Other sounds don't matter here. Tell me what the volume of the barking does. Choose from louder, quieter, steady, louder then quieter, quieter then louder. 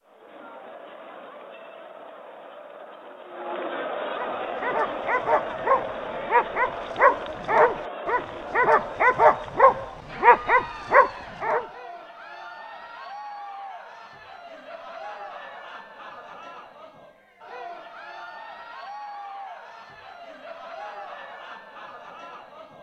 louder.